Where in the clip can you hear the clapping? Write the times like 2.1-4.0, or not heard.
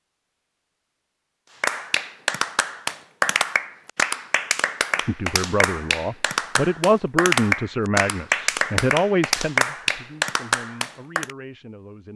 1.6-11.3.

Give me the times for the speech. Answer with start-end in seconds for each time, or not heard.
5.0-12.1.